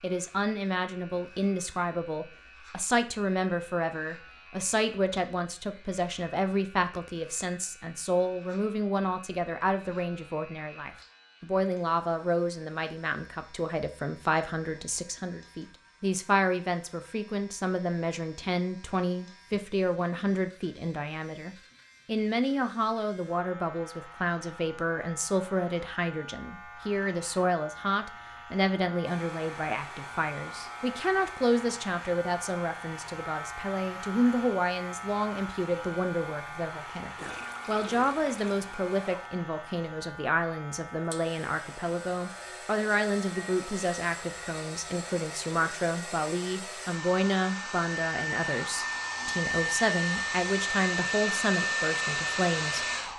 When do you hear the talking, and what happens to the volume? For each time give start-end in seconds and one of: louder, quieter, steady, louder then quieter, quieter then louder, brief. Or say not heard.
0.0-52.9 steady.